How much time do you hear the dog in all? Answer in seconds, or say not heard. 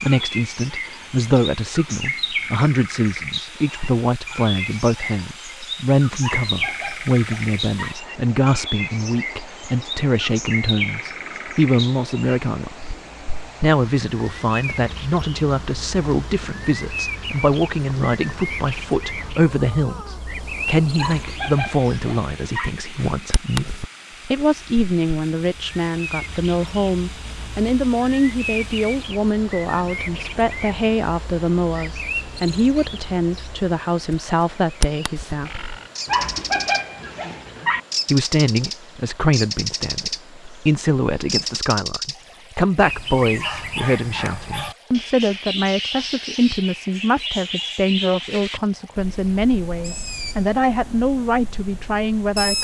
5 s.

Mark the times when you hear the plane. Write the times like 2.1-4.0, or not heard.
not heard.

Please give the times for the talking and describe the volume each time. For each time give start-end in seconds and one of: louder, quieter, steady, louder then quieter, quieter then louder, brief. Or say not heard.
0.0-12.9 steady
13.6-35.8 steady
38.1-52.5 steady.